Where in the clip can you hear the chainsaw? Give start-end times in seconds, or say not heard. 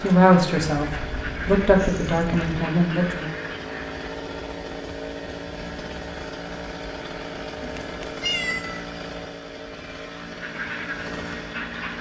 0.0-11.9.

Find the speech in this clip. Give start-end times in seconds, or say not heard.
0.0-3.4.